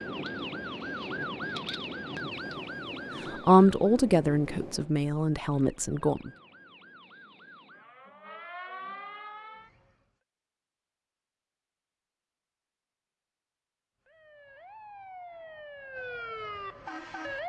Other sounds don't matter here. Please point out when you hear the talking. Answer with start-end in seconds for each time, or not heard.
3.3-6.3.